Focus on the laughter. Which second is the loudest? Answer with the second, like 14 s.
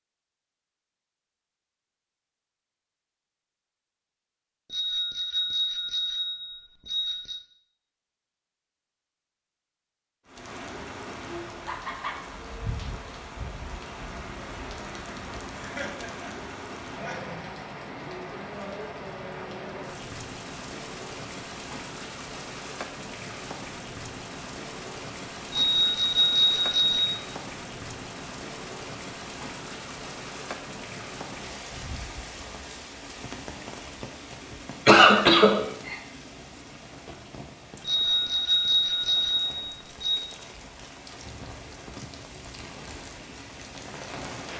35 s.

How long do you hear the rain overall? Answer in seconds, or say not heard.
34 s.